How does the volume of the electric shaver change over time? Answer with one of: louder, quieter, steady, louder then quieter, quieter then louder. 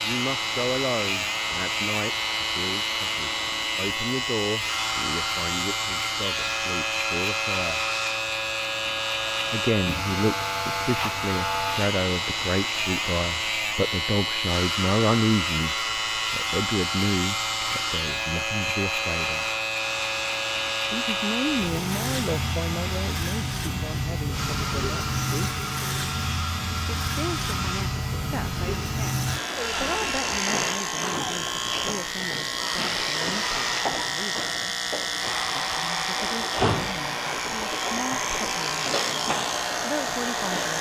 steady.